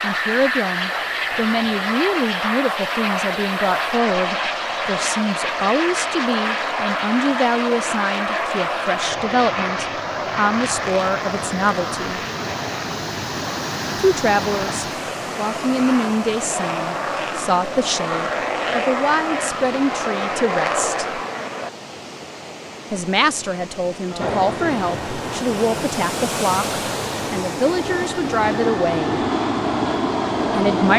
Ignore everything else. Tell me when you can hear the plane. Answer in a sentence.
The plane can be heard from 0.0 to 21.7 s and from 24.1 to 30.9 s.